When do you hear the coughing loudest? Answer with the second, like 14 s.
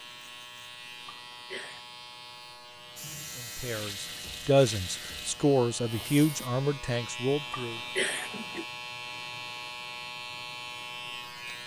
8 s.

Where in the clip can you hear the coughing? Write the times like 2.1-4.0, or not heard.
1.1-1.9, 7.5-8.7.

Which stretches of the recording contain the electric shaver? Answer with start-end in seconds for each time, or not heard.
0.0-11.6.